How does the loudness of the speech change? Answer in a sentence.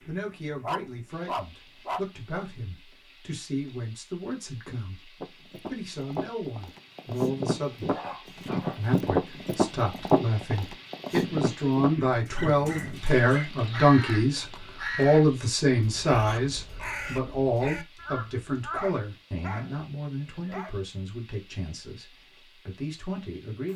The loudness of the speech goes up, then down.